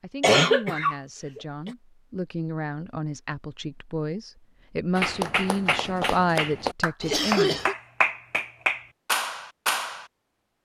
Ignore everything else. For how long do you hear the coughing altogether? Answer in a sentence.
The coughing can be heard for 2 seconds in total.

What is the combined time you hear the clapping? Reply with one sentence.
The clapping can be heard for 5 seconds in total.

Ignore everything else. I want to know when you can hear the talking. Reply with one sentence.
The talking can be heard from 0.0 to 7.6 s.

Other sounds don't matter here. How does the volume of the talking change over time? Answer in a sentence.
The volume of the talking goes up.